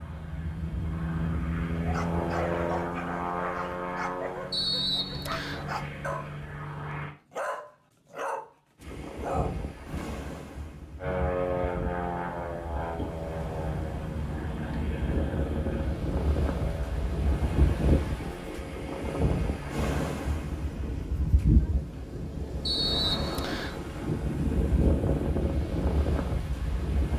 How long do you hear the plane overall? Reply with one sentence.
The plane can be heard for 16 seconds in total.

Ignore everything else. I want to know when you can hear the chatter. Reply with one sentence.
The chatter can't be heard in this clip.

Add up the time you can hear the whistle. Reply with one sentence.
You can hear the whistle for 2 seconds altogether.